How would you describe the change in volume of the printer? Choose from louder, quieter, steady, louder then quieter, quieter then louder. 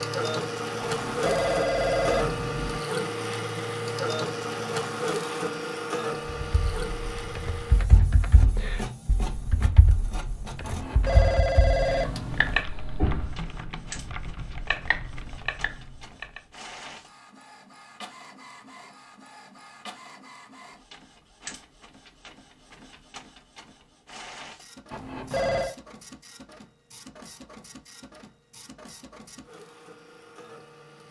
quieter.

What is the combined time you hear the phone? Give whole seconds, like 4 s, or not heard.
5 s.